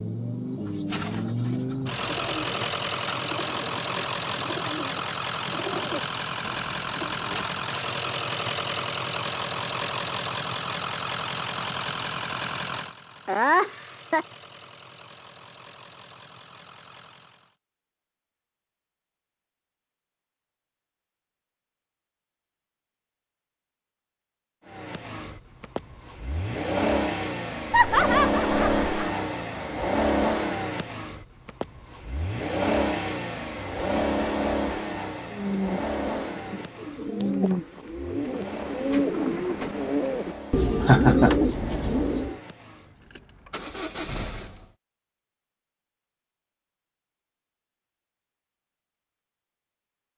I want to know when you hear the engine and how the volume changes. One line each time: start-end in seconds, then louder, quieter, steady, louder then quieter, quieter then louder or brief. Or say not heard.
0.0-17.6 quieter
24.6-44.8 quieter.